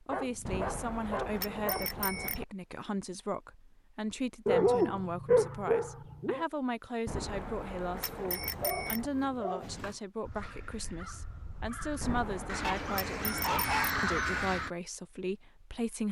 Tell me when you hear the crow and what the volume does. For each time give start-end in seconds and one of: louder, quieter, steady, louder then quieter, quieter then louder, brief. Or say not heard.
9.6-14.7 louder.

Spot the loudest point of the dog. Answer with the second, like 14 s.
5 s.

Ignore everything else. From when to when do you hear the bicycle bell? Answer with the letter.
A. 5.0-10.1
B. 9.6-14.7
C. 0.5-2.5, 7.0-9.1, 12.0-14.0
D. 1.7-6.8
C.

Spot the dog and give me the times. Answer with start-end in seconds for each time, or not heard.
0.1-2.0, 4.5-6.5, 8.0-9.9, 12.6-14.4.